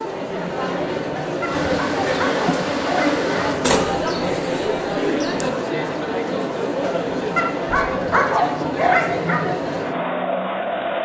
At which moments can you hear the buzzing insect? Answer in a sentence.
The buzzing insect can be heard from 1.4 to 3.6 s.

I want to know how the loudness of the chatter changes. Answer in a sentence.
The volume of the chatter stays about the same.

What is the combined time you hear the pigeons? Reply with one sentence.
The pigeons can be heard for 2 seconds in total.